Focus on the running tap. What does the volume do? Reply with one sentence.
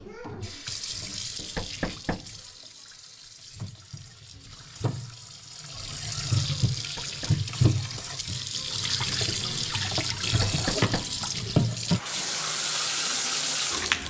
The volume of the running tap goes up.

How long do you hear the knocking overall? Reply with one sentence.
You can hear the knocking for 3 seconds altogether.